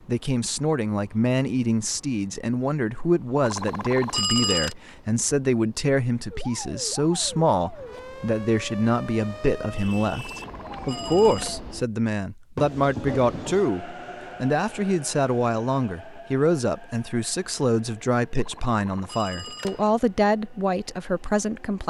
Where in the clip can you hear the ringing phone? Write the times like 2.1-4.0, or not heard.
3.4-4.8, 10.2-11.6, 18.4-19.9.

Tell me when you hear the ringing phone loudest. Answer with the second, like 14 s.
4 s.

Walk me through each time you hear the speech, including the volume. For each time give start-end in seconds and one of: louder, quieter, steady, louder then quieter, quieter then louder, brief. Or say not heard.
0.1-21.8 steady.